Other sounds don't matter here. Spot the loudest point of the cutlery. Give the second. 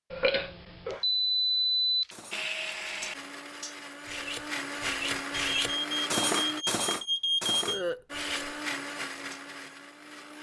6 s.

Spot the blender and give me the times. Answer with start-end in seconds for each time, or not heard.
2.3-6.7, 8.1-10.3.